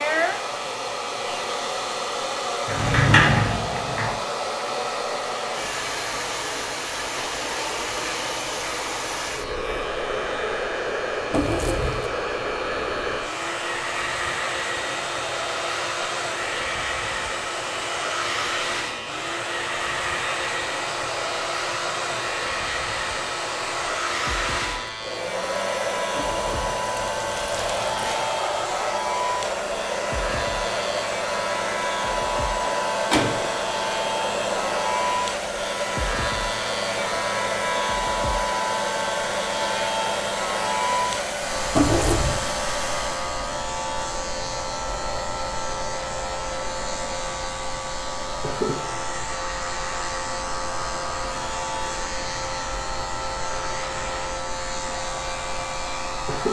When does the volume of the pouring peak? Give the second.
42 s.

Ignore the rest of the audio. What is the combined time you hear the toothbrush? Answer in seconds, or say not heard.
not heard.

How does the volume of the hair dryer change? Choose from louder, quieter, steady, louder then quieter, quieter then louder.
quieter.